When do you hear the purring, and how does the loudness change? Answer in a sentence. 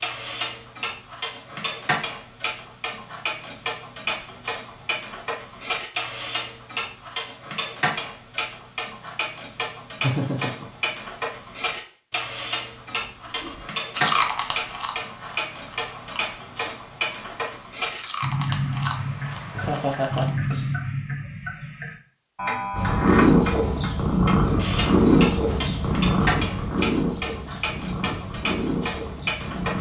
You can hear the purring from 22.7 to 29.7 s, getting quieter.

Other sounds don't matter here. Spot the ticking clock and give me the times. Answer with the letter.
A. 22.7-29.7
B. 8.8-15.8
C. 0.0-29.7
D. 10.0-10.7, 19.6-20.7
C.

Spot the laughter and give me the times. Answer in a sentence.
The laughter can be heard from 10.0 to 10.7 s and from 19.6 to 20.7 s.